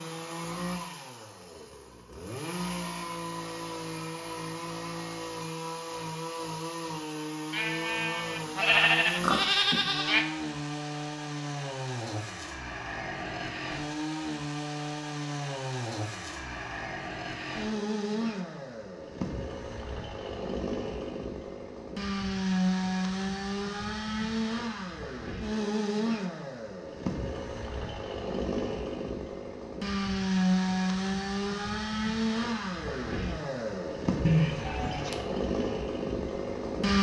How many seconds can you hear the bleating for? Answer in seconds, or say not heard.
4 s.